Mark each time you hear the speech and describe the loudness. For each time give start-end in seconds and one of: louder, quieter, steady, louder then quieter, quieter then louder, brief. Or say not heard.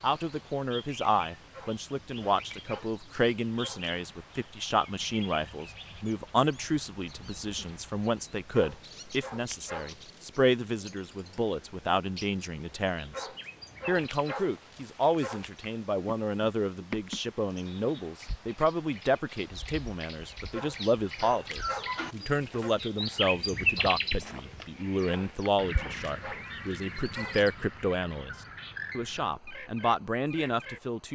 0.0-28.4 steady
28.9-31.1 brief.